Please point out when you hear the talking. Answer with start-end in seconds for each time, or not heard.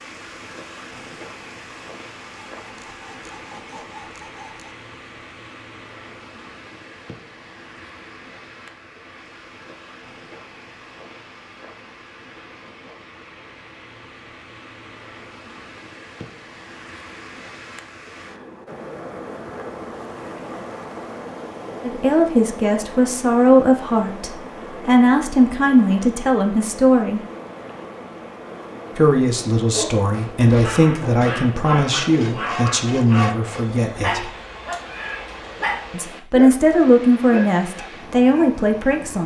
21.8-27.2, 28.9-34.2, 35.9-39.2.